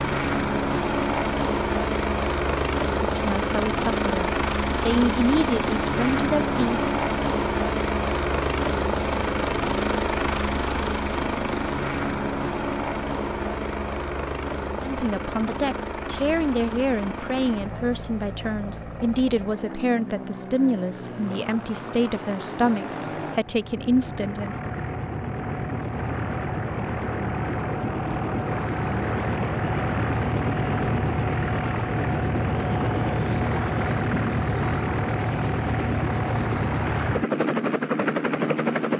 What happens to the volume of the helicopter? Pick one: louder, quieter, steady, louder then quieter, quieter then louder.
quieter then louder.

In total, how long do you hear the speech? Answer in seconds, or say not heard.
14 s.